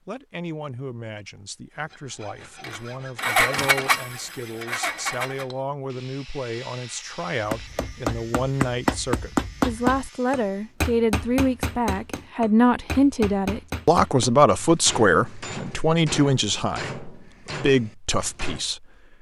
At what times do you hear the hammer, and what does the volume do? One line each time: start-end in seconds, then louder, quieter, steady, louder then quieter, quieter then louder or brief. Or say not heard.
7.5-18.6 quieter.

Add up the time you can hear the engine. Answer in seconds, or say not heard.
3 s.